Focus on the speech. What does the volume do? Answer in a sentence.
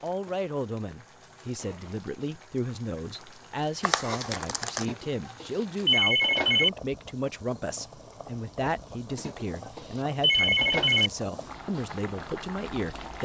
The loudness of the speech stays about the same.